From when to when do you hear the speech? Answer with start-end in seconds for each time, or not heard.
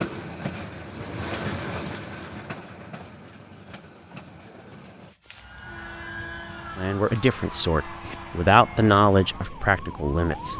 6.8-10.5.